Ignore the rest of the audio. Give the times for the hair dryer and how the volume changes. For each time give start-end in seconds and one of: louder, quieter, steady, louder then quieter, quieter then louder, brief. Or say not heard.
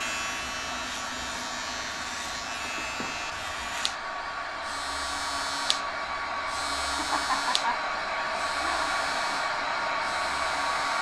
0.0-10.9 louder.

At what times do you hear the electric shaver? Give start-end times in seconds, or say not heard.
0.0-10.9.